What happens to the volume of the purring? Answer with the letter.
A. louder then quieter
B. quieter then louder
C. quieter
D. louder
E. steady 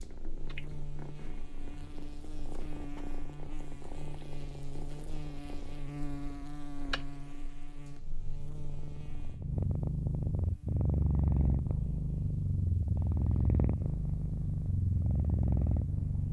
D.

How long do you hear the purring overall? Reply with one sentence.
You can hear the purring for 16 seconds altogether.